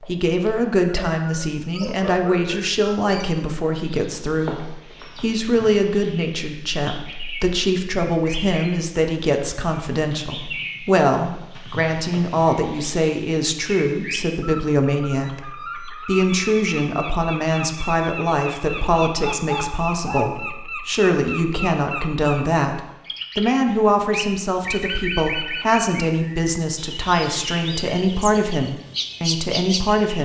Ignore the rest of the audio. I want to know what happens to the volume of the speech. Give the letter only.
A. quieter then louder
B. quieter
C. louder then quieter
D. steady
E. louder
D.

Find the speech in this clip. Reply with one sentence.
The speech can be heard from 0.0 to 30.2 s.